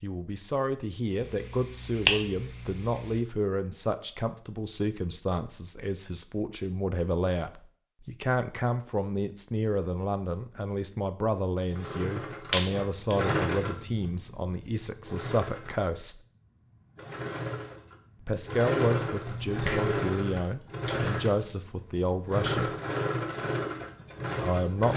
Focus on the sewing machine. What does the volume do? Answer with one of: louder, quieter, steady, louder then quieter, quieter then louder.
quieter then louder.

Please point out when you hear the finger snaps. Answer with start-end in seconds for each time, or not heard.
1.6-3.1, 12.5-13.2, 19.2-21.2.